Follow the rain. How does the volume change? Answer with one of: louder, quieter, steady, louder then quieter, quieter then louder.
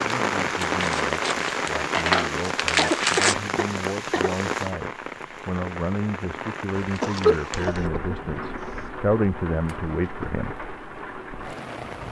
quieter.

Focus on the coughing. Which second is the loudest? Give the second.
7 s.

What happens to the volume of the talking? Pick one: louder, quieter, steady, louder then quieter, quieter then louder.
louder.